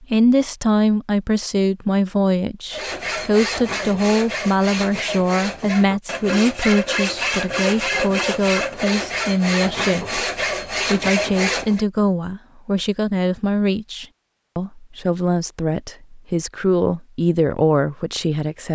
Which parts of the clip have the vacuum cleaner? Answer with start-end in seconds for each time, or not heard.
not heard.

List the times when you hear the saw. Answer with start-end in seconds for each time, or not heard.
2.7-11.8.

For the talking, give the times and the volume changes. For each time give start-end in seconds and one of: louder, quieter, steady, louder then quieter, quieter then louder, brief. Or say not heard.
0.0-18.6 steady.